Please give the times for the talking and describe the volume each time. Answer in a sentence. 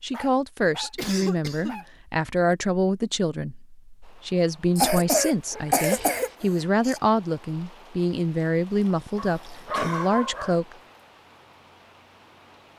You can hear the talking from 0.0 to 10.8 s, at a steady volume.